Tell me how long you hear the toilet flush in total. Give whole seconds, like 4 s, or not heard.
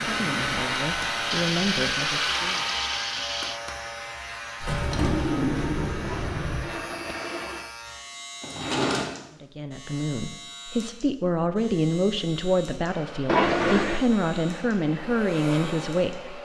5 s.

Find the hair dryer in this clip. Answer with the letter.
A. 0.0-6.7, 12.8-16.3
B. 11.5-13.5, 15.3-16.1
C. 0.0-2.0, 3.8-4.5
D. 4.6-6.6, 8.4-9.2
A.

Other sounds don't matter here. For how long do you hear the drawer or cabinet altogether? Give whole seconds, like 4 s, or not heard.
3 s.